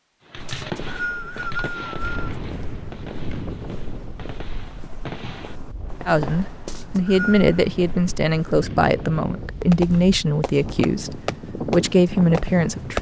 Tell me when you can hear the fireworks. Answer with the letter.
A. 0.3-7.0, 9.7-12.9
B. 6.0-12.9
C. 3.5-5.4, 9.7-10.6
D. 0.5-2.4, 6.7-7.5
A.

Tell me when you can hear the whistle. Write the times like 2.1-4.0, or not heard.
0.5-2.4, 6.7-7.5.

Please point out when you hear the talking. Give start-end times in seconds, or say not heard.
6.0-12.9.